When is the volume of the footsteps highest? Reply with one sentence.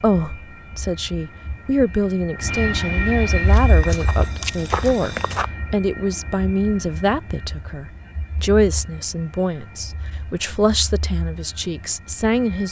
The volume of the footsteps peaks at 5 seconds.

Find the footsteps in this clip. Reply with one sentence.
The footsteps can be heard from 3.4 to 5.5 s.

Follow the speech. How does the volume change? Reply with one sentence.
The volume of the speech stays about the same.